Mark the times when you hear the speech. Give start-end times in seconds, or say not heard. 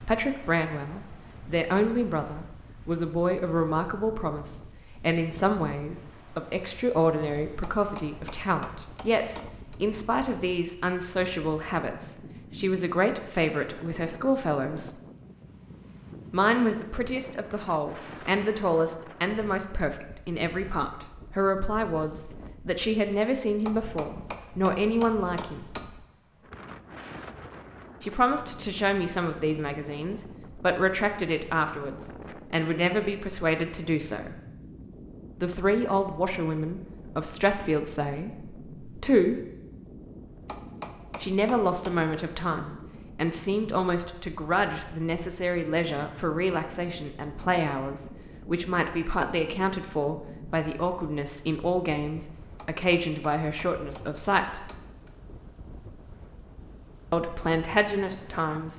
0.1-15.0, 16.3-25.6, 28.0-34.4, 35.4-39.4, 41.2-54.7, 57.1-58.7.